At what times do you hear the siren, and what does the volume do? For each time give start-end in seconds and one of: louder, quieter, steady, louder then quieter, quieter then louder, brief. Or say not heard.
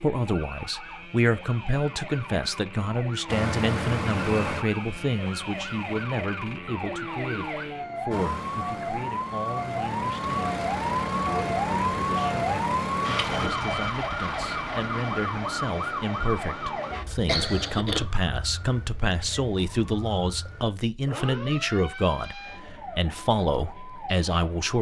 0.0-24.7 louder then quieter.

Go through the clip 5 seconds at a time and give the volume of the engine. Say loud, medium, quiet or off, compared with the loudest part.
loud, medium, loud, off, off.